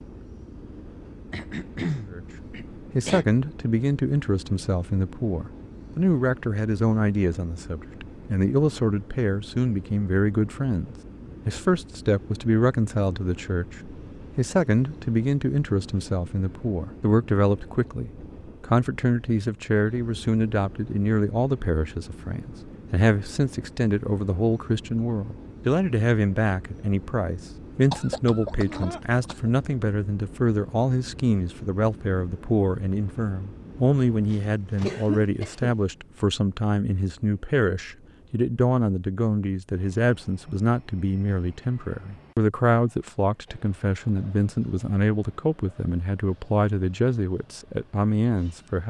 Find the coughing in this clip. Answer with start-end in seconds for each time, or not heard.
1.3-3.2, 27.9-29.5, 34.3-35.8.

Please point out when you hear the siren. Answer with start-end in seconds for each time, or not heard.
not heard.